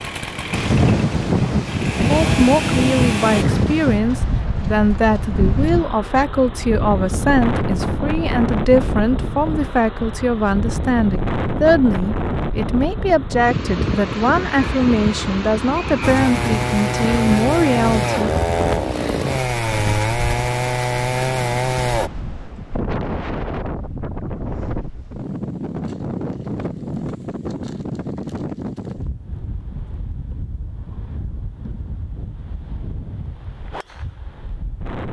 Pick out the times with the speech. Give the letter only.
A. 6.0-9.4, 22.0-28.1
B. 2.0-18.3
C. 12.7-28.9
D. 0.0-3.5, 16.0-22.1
B.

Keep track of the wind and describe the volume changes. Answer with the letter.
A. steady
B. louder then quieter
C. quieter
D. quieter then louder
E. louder
C.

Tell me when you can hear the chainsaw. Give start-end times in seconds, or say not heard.
0.0-3.5, 16.0-22.1.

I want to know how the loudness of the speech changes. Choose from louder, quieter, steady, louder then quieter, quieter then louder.
steady.